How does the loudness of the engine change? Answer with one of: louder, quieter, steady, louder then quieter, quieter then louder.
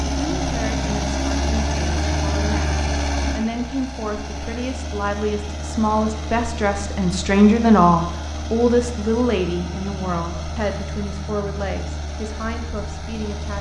quieter.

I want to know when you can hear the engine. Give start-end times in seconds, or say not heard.
0.0-13.5.